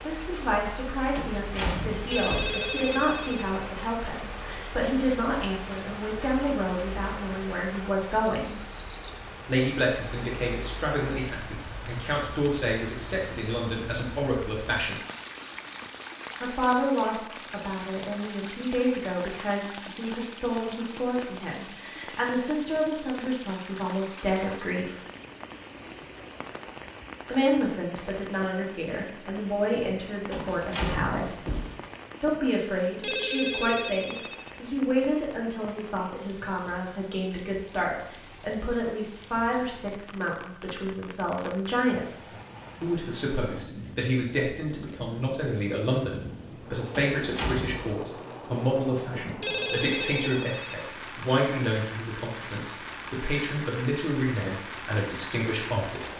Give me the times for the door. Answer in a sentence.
The door can be heard from 1.1 to 2.6 s, from 30.3 to 31.8 s and from 46.9 to 48.0 s.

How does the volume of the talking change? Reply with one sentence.
The loudness of the talking stays about the same.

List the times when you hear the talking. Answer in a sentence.
The talking can be heard from 0.0 to 8.6 s, from 9.4 to 15.0 s, from 16.4 to 25.0 s, from 27.2 to 31.5 s and from 32.2 to 56.1 s.